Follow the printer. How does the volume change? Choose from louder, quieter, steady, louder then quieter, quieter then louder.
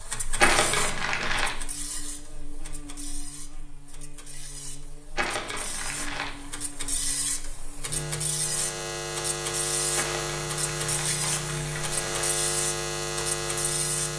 quieter then louder.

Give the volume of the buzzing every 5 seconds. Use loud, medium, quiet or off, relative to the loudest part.
quiet, medium, loud.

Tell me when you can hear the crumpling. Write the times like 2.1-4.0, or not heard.
0.3-1.6, 5.2-6.5, 9.9-12.0.